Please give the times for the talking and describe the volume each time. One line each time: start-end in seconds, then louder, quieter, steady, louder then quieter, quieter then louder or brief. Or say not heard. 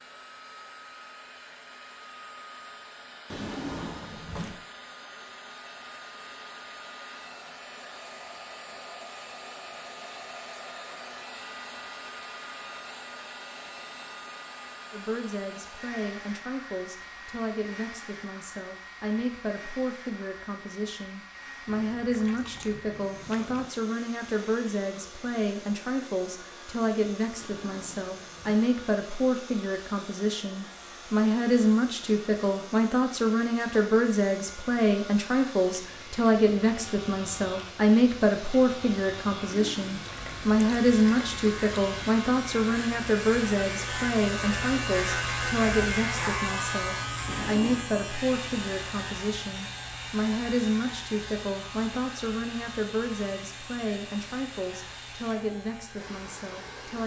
14.9-57.0 louder then quieter.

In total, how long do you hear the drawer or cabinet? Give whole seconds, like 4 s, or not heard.
3 s.